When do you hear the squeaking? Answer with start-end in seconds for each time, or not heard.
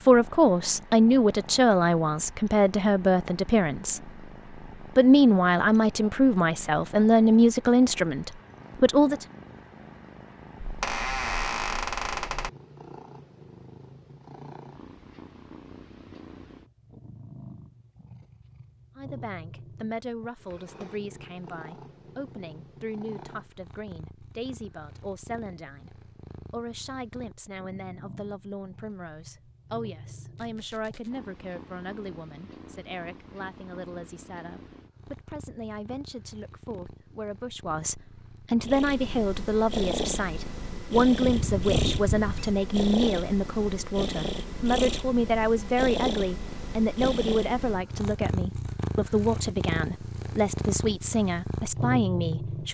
10.6-12.5, 30.4-31.1, 41.2-42.5.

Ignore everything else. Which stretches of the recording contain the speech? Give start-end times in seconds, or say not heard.
0.1-4.1, 5.0-9.2, 18.9-52.6.